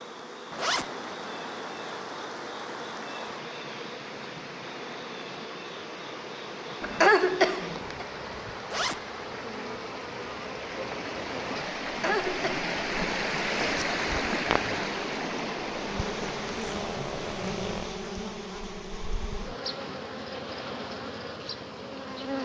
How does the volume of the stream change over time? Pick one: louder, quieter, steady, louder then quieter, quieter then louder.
louder.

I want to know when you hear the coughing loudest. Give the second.
7 s.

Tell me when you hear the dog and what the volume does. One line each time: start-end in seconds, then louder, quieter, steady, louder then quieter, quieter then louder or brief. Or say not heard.
not heard.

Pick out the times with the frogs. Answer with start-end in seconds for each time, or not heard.
not heard.